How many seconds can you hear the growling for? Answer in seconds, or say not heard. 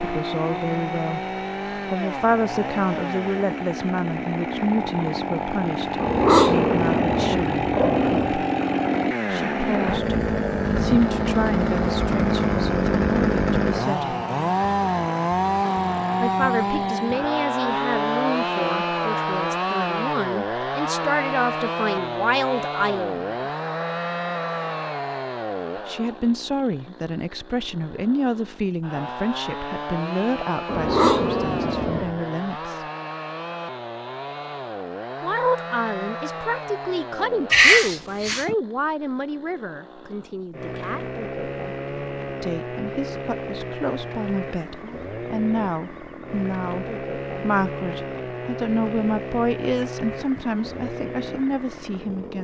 5 s.